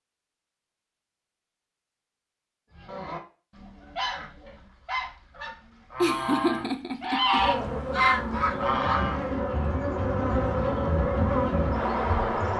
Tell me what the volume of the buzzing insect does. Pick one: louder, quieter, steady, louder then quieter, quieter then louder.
louder.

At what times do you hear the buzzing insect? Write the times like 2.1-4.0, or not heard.
7.3-12.5.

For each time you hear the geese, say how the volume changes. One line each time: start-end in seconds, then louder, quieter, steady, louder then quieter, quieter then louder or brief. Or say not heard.
2.7-9.3 louder.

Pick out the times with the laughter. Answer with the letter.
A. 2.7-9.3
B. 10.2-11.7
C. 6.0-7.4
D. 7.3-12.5
C.